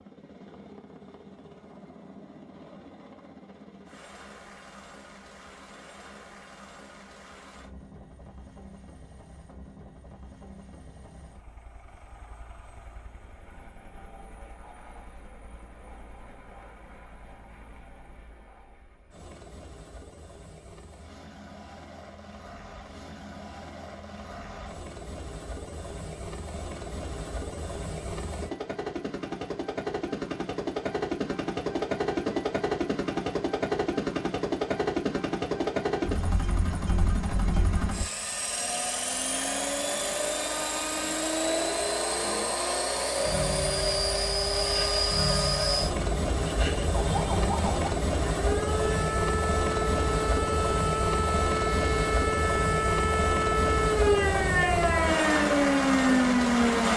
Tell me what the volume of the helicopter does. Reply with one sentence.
The loudness of the helicopter goes up.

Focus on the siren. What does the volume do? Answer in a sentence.
The loudness of the siren goes up.